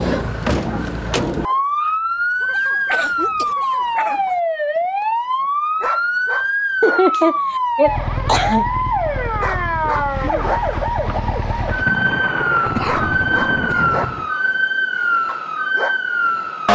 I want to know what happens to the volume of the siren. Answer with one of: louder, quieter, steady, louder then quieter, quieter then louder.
steady.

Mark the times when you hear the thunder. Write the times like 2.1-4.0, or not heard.
11.2-14.3.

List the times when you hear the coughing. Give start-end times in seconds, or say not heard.
2.9-3.5, 6.8-8.7, 12.7-13.9.